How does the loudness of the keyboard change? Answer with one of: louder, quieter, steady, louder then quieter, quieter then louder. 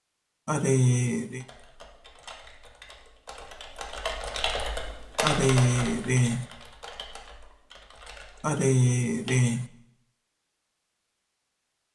louder then quieter.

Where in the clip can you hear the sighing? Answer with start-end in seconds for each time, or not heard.
0.5-1.4, 5.2-6.5, 8.4-9.7.